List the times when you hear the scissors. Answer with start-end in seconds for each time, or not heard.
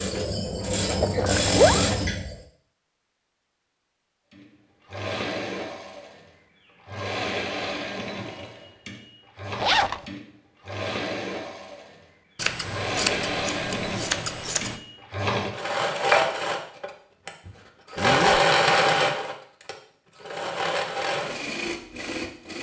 12.3-14.8.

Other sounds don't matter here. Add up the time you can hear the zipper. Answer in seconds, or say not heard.
2 s.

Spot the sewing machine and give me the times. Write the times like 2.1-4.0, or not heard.
0.0-2.4, 4.3-22.5.